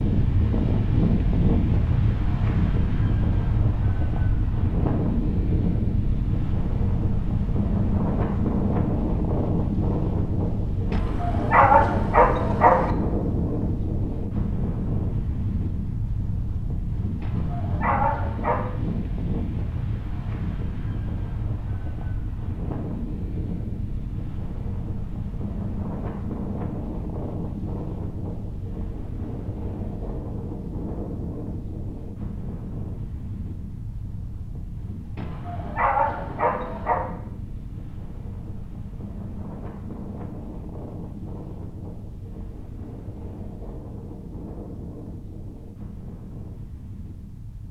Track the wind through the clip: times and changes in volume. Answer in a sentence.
The wind can be heard from 0.0 to 47.6 s, getting quieter.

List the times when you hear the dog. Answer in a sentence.
You can hear the dog from 10.9 to 12.9 s, from 17.2 to 18.6 s and from 35.1 to 37.0 s.